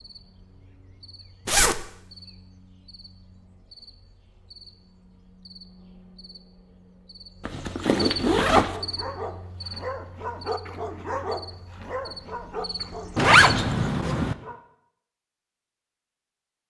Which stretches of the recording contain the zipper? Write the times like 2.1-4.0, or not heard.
1.4-1.9, 7.5-8.8, 13.2-14.3.